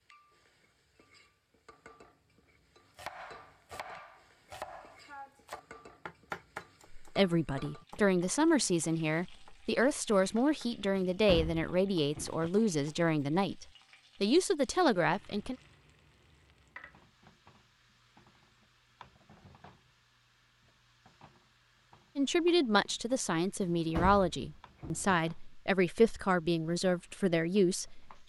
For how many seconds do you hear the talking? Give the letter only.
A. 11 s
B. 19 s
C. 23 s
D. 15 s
D.